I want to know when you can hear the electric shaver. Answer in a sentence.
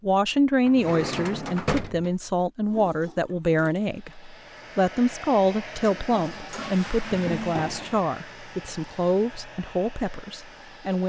You can't hear the electric shaver here.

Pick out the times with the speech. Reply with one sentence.
You can hear the speech from 0.0 to 11.0 s.